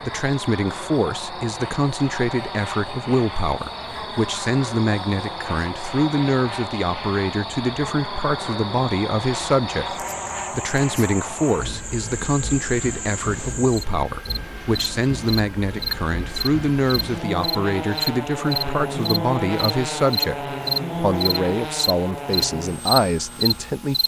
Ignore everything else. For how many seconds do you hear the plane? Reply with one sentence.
The plane can be heard for 24 seconds in total.